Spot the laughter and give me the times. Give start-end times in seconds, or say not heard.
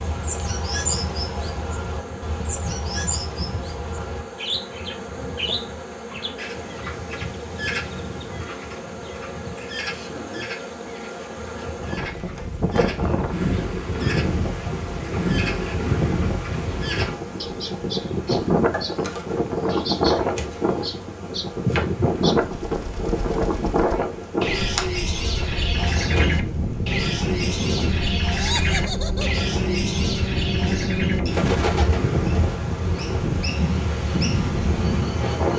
28.4-29.4.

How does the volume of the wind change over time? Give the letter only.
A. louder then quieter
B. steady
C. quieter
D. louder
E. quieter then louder
B.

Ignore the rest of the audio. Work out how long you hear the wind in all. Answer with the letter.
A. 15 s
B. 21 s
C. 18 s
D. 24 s
D.